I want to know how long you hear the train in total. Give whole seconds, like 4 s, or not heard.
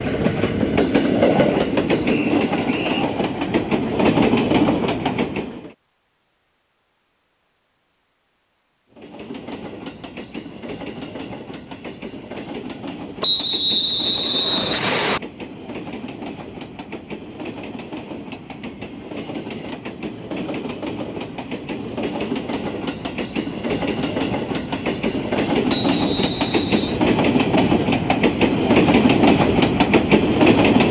28 s.